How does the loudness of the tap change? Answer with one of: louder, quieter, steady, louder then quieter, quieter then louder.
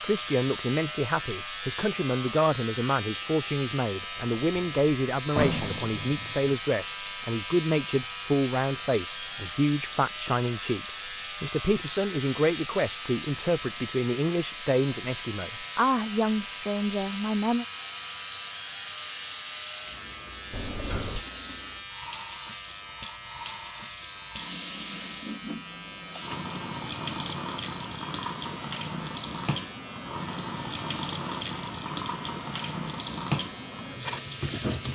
louder.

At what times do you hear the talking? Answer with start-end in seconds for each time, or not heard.
0.0-17.6.